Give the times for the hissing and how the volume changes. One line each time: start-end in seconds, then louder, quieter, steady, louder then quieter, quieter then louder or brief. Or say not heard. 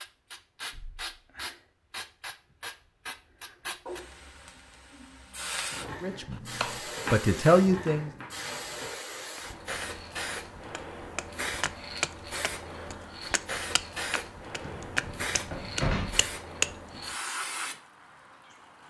0.0-18.8 steady.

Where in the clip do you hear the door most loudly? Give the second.
16 s.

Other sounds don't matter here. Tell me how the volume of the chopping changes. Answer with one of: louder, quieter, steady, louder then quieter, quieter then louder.
quieter then louder.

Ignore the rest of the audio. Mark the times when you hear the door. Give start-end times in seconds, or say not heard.
14.6-16.3.